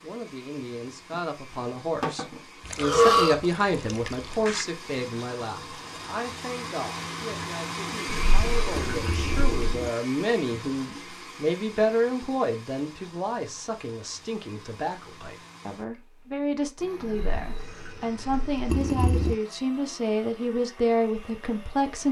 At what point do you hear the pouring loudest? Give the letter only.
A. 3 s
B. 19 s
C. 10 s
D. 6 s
B.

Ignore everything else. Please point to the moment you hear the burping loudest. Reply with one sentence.
The loudest moment of the burping is at 3 seconds.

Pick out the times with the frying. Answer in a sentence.
You can't hear the frying here.